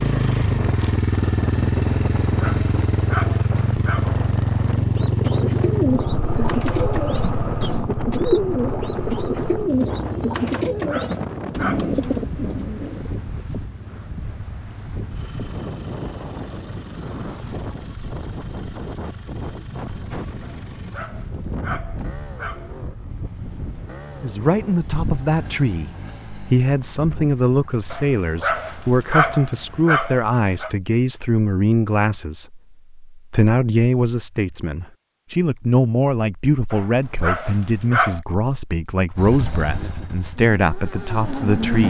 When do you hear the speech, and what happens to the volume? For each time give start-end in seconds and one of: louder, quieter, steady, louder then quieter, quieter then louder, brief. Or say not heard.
24.2-41.8 steady.